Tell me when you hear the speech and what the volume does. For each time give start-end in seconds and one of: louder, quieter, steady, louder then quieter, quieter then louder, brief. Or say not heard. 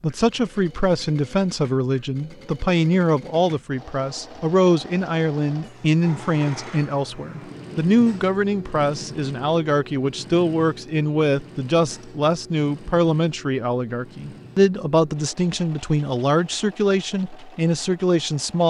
0.0-18.6 steady.